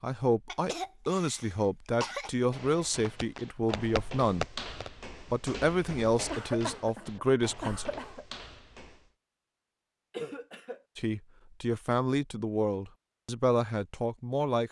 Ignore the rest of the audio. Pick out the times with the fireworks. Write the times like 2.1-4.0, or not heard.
2.9-4.9.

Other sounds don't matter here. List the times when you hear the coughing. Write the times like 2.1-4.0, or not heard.
0.5-2.4, 6.3-8.2, 10.1-10.8.